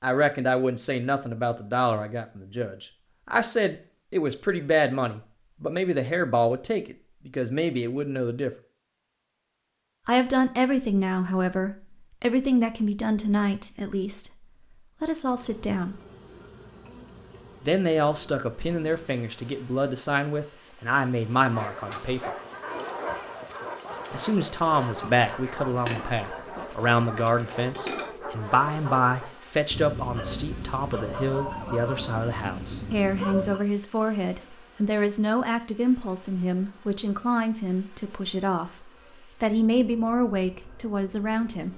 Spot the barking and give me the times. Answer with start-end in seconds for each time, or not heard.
21.5-33.6.